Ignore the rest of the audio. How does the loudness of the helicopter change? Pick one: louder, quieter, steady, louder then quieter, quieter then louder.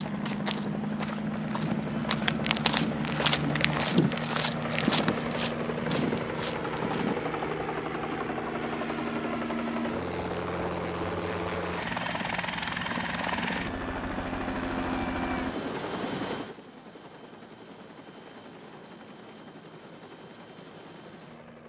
quieter.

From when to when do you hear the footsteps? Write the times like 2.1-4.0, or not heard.
0.0-7.5.